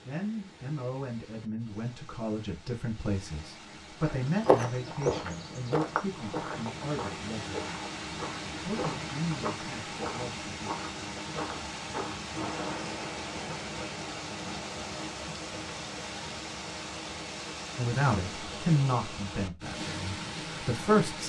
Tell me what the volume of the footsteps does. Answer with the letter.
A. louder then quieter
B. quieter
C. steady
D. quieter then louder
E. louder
B.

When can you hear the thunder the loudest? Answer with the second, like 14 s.
13 s.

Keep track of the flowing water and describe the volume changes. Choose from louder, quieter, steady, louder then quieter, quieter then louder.
louder.